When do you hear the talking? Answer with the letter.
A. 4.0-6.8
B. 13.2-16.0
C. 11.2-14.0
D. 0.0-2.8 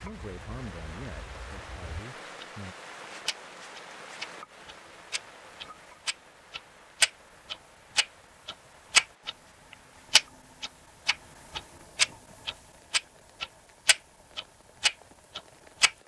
D.